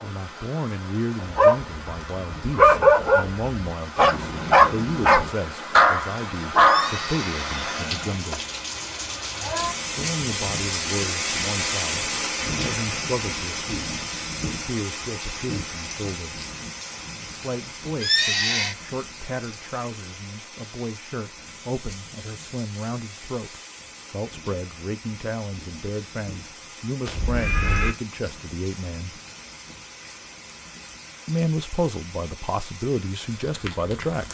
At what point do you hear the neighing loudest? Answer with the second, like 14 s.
18 s.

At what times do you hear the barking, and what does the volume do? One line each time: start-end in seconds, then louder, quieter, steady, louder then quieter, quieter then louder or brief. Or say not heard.
1.2-7.0 steady.